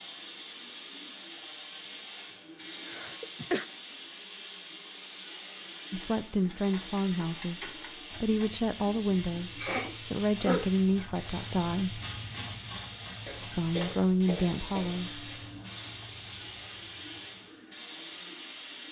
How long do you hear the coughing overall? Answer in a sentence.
The coughing can be heard for 4 seconds in total.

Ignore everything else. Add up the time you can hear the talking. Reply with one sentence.
The talking can be heard for 8 seconds in total.